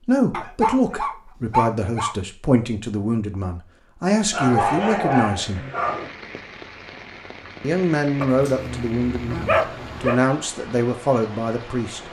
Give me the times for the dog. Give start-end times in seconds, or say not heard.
0.3-2.1, 4.3-6.1, 8.2-10.2.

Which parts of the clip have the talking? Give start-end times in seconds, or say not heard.
0.1-5.7, 7.6-12.0.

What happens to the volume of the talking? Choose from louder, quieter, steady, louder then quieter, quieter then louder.
steady.